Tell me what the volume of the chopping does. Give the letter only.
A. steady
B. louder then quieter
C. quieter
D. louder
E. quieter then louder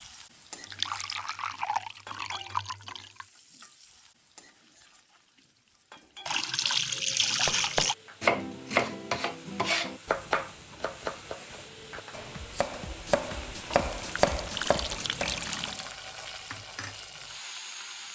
E.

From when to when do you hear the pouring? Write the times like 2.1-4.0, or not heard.
0.6-3.2, 6.2-8.0, 13.7-15.9.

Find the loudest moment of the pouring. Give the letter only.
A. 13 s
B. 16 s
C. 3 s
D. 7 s
D.